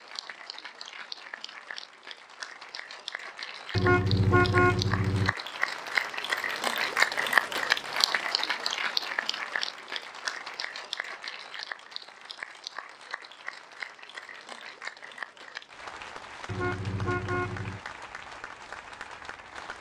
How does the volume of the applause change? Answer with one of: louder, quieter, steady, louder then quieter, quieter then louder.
louder then quieter.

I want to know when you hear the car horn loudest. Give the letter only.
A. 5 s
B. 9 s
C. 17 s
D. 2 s
A.